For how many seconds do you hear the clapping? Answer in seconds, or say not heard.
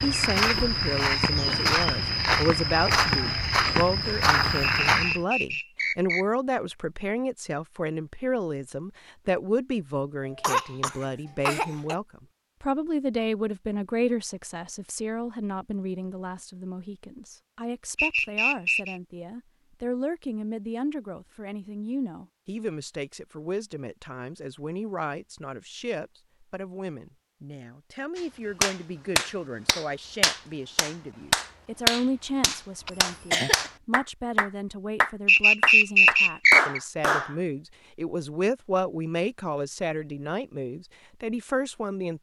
9 s.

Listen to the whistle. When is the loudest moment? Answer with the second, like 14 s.
36 s.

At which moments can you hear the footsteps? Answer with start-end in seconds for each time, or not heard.
0.0-5.2.